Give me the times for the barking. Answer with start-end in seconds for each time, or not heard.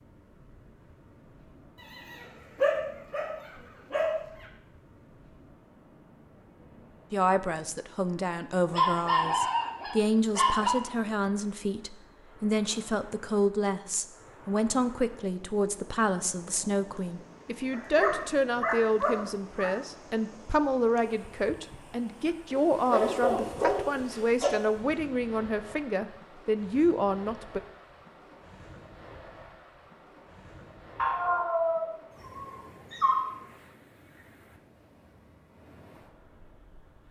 1.8-4.5, 8.7-10.7, 17.7-19.7, 22.5-24.5, 30.9-33.2.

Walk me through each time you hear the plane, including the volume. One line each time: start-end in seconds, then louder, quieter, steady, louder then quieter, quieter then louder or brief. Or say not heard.
not heard.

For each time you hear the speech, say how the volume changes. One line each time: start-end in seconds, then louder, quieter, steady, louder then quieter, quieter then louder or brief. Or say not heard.
7.1-27.6 steady.